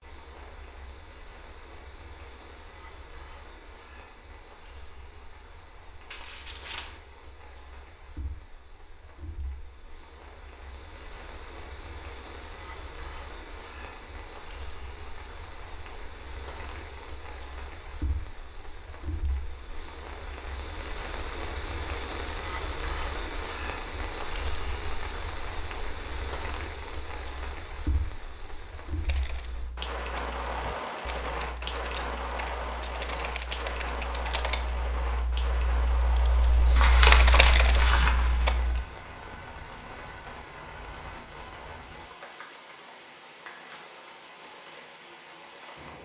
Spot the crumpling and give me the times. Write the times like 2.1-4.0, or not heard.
6.1-7.0, 36.8-38.5.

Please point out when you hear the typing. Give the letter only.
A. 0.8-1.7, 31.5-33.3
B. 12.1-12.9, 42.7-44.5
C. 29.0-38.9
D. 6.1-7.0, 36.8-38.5
C.